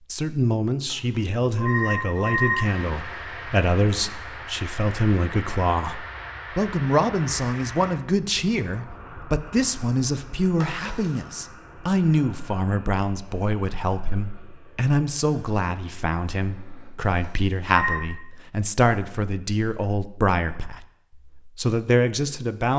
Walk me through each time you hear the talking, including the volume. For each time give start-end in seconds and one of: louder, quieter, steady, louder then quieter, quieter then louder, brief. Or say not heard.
0.1-22.7 steady.